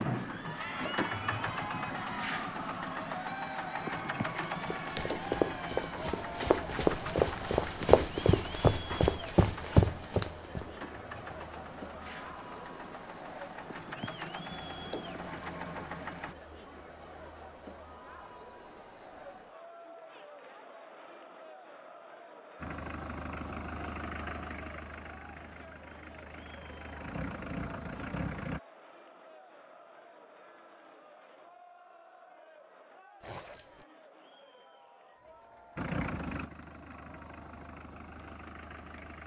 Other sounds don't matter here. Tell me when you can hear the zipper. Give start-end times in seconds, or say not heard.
33.2-33.9.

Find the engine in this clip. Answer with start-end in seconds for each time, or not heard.
0.0-16.4, 22.6-28.6, 35.8-39.2.